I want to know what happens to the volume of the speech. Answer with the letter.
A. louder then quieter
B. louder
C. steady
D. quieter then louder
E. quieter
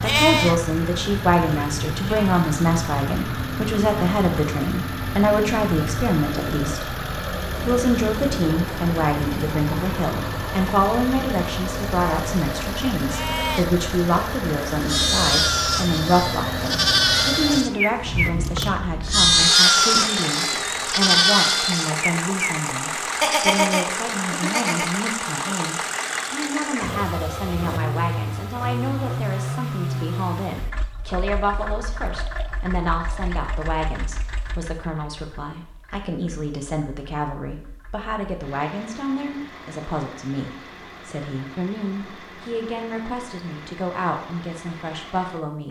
E.